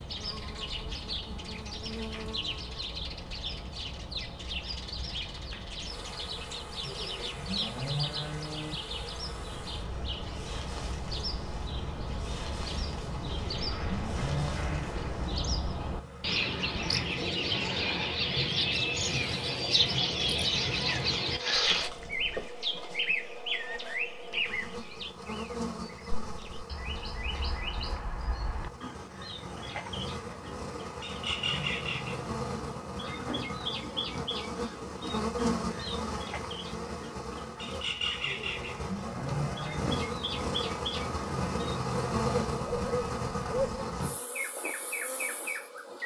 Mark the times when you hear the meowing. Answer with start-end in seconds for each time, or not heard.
20.8-21.9.